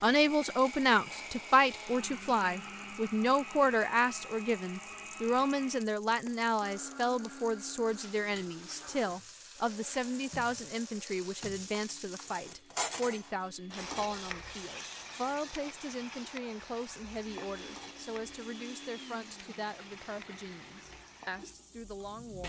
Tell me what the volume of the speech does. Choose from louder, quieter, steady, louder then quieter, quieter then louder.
quieter.